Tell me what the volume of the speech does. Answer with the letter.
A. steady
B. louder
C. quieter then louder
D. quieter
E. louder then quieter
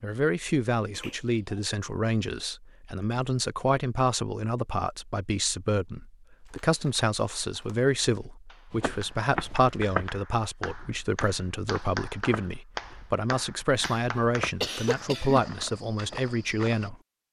A.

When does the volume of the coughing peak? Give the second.
15 s.